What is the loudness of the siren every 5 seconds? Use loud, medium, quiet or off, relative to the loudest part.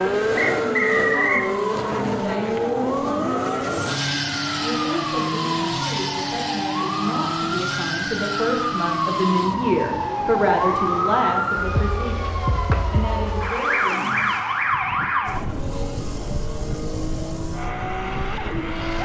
medium, loud, loud, medium.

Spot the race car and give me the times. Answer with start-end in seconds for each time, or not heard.
0.0-19.0.